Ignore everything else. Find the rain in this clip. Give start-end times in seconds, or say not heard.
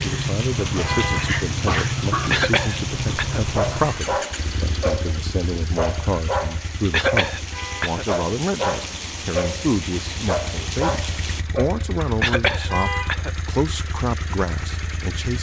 0.0-11.4.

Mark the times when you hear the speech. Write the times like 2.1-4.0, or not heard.
0.0-15.3.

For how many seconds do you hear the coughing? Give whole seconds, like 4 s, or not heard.
3 s.